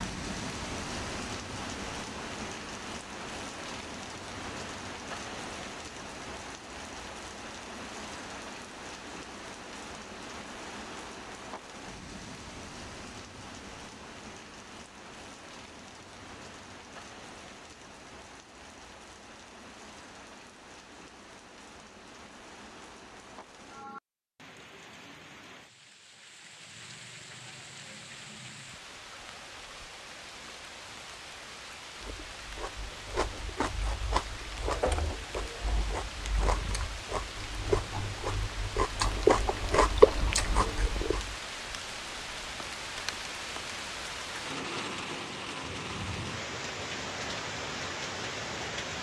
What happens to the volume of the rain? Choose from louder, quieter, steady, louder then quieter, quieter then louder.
quieter then louder.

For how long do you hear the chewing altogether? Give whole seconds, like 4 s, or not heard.
9 s.